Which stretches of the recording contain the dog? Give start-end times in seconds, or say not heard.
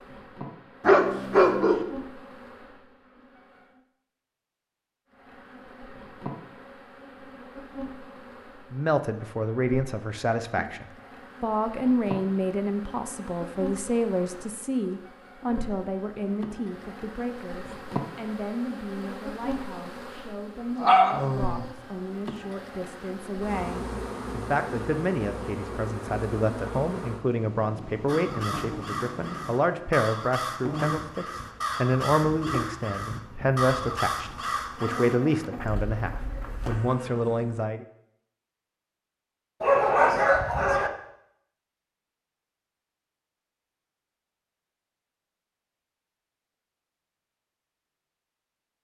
0.8-1.9, 20.8-21.6, 39.6-40.9.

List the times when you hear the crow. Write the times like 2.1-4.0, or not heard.
28.1-36.8.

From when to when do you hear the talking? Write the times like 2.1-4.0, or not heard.
8.7-37.9.